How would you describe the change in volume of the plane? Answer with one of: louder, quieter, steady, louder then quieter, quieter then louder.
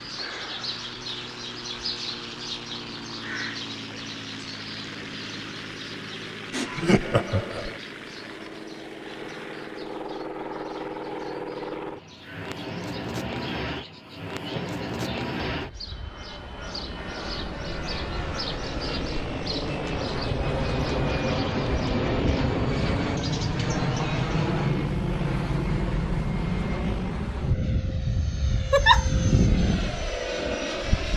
louder.